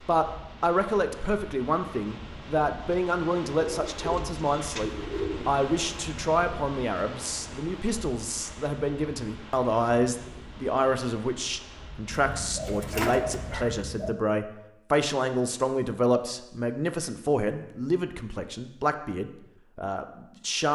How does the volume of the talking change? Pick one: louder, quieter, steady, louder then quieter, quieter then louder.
steady.